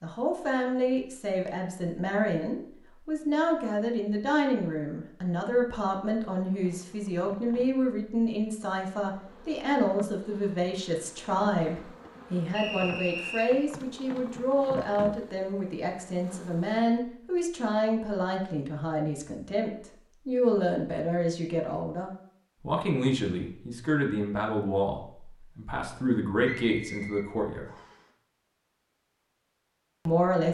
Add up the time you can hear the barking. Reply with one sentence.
The barking can't be heard in this clip.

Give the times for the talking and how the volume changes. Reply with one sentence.
You can hear the talking from 0.0 to 27.6 s, at a steady volume; and briefly from 30.1 to 30.5 s.